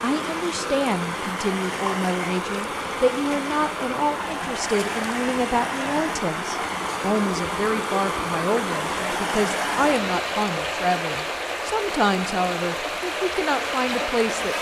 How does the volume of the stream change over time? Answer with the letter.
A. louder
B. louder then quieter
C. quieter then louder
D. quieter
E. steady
E.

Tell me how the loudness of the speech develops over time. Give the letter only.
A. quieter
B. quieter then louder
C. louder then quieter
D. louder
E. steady
E.